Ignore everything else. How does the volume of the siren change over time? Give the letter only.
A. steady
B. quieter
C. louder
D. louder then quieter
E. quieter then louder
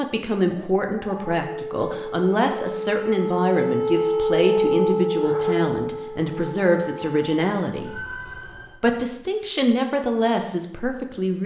D.